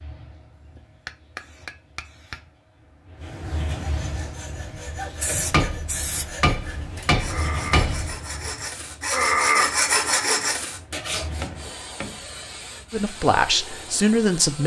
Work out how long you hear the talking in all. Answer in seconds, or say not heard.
2 s.